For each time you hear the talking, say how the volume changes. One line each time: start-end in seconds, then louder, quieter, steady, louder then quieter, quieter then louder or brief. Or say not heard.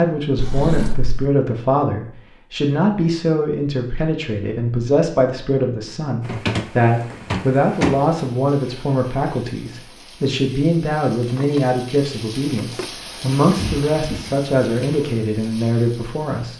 0.0-16.5 steady.